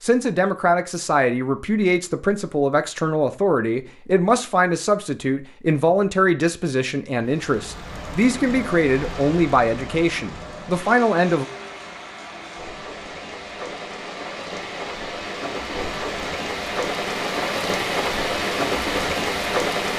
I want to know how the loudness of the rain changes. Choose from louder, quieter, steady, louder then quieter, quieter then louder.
louder.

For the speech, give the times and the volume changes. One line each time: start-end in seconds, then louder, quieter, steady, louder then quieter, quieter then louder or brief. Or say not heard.
0.0-11.4 steady.